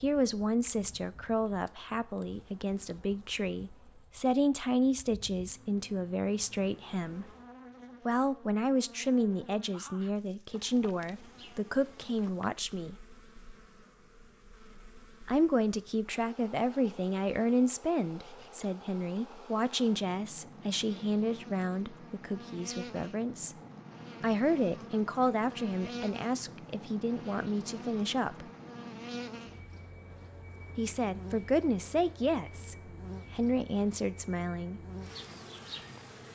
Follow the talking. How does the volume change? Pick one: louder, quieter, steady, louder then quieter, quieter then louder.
steady.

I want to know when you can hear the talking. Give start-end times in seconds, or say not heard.
0.0-7.2, 8.1-12.9, 15.2-23.6, 24.2-28.4, 30.8-34.8.